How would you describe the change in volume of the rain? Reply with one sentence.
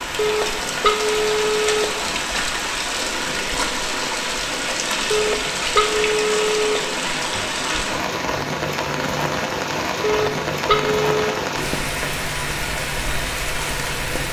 The volume of the rain stays about the same.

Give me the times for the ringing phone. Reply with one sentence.
The ringing phone can be heard from 0.1 to 1.9 s, from 5.1 to 6.8 s and from 10.0 to 11.2 s.